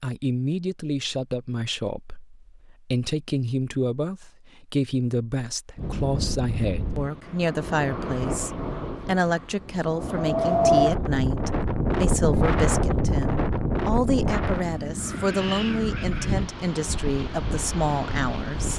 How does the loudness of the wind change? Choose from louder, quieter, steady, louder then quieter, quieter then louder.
louder then quieter.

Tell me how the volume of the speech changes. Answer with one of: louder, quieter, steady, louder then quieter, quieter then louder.
steady.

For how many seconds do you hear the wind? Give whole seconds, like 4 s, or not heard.
13 s.